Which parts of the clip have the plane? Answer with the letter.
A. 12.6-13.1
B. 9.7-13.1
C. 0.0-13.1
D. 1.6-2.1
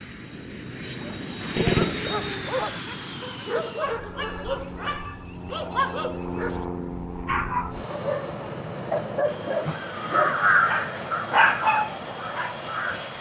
C.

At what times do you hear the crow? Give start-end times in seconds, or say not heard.
9.7-13.1.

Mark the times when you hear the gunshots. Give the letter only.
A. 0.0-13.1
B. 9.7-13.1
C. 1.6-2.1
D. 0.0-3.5
C.